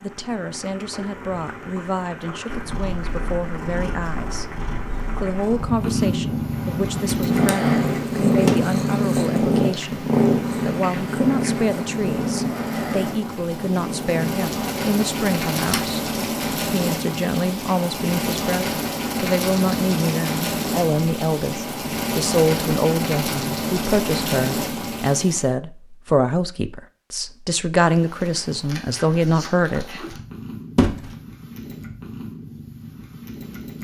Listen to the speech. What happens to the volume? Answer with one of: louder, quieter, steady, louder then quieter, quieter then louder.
louder.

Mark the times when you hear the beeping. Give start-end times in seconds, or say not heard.
not heard.